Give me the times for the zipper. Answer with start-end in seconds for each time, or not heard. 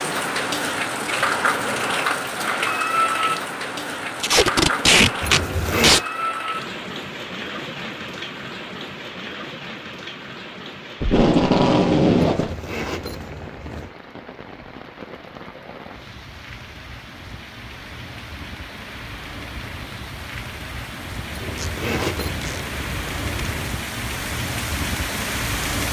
5.2-6.0, 12.4-13.9, 21.3-23.7.